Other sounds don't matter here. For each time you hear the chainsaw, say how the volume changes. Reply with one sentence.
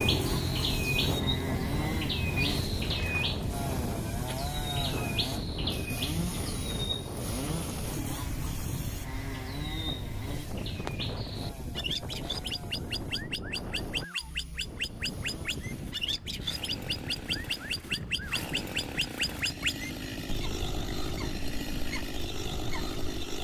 The chainsaw can be heard from 0.0 to 23.3 s, getting quieter then louder.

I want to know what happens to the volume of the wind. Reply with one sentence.
The volume of the wind goes down.